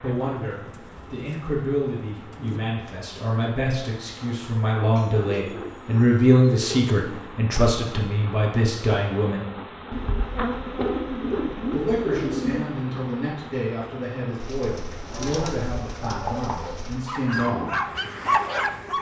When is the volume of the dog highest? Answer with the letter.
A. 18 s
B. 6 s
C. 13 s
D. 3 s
A.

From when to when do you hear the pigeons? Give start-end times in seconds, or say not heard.
0.3-2.6, 5.0-7.3, 9.9-12.7, 14.4-17.1.